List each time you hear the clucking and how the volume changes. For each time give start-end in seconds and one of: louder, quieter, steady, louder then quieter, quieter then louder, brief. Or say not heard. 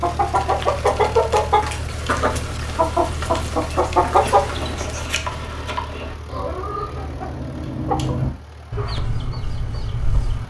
0.0-10.4 quieter.